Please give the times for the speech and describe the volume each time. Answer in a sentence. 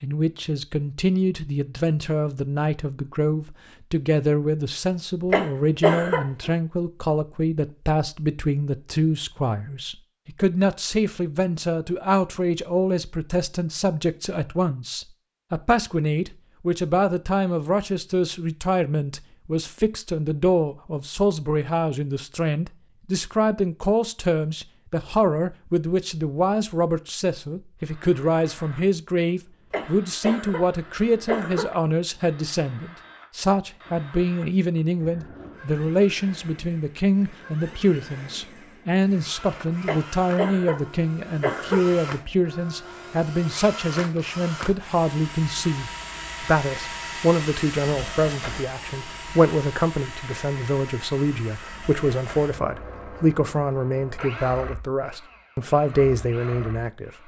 The speech can be heard from 0.0 to 57.2 s, at a steady volume.